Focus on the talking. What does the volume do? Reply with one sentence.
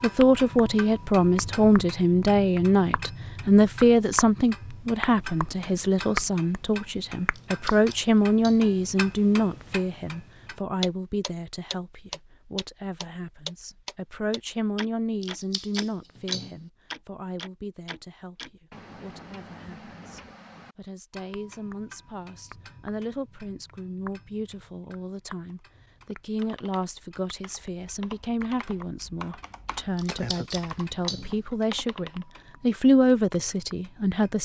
The loudness of the talking goes down, then up.